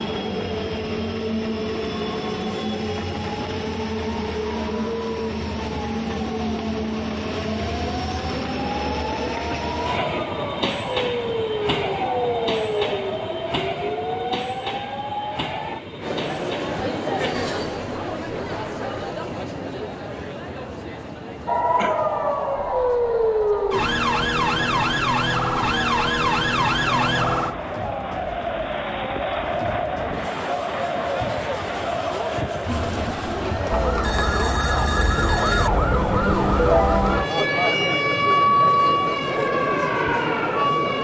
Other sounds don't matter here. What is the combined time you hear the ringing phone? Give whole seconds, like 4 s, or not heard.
2 s.